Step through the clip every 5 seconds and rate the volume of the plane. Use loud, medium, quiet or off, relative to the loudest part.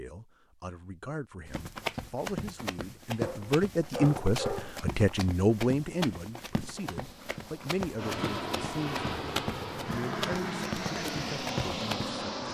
off, loud, loud.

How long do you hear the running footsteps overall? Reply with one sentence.
You can hear the running footsteps for 11 seconds altogether.